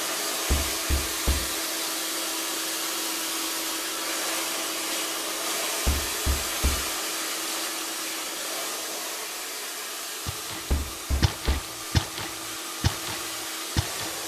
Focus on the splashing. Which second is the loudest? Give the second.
12 s.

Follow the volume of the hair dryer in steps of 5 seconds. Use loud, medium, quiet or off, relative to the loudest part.
loud, loud, medium.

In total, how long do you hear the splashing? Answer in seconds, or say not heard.
4 s.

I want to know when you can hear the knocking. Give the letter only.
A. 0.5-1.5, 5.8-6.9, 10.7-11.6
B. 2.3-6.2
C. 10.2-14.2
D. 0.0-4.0
A.